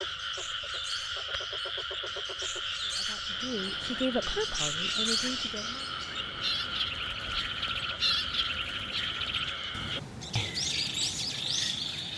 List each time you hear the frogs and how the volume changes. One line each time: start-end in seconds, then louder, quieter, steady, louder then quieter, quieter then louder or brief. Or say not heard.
0.0-12.1 steady.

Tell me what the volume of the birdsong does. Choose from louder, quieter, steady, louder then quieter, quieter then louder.
louder.